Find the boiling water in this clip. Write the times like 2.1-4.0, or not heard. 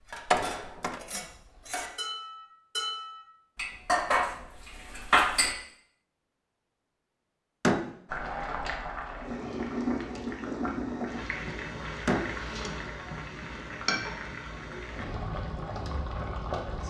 8.1-16.8.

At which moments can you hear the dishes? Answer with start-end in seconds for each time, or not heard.
0.0-5.5.